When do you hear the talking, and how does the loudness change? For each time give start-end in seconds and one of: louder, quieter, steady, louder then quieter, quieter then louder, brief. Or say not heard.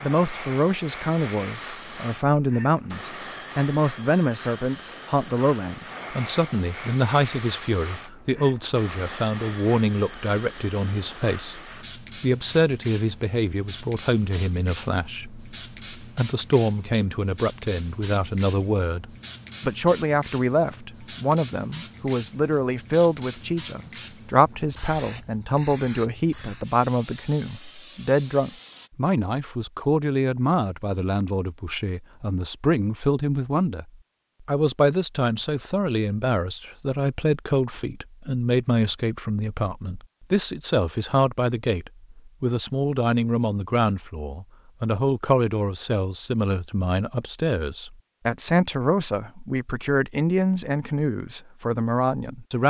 0.0-11.6 steady
12.2-33.9 steady
34.5-52.6 steady.